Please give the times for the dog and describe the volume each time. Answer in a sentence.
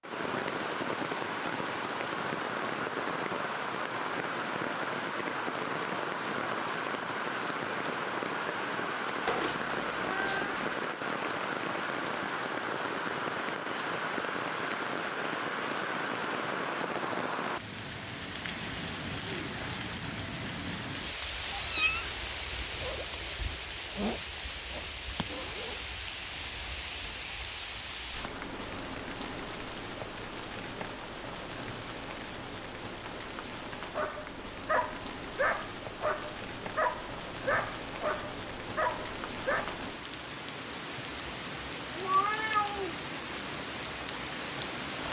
You can hear the dog from 33.9 to 39.8 s, at a steady volume.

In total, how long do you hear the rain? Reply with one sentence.
You can hear the rain for 45 seconds altogether.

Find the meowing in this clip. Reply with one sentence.
You can hear the meowing from 9.2 to 10.8 s, from 21.4 to 22.1 s and from 41.9 to 43.0 s.